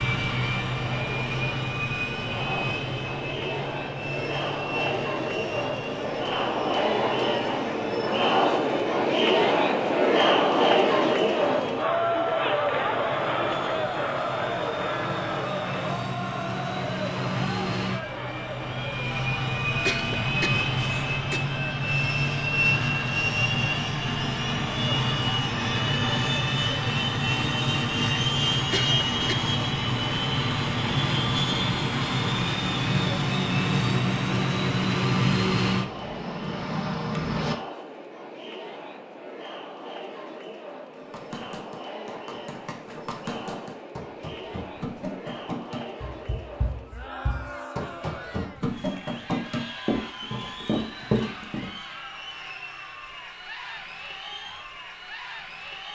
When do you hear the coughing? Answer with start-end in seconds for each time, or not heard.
19.6-21.4, 28.6-29.4.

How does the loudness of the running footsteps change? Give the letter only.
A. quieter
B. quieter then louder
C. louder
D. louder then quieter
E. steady
C.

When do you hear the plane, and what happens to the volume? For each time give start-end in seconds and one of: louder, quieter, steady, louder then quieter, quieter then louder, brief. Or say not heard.
0.0-37.5 quieter then louder.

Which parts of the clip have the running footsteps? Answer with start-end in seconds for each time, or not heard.
40.9-51.7.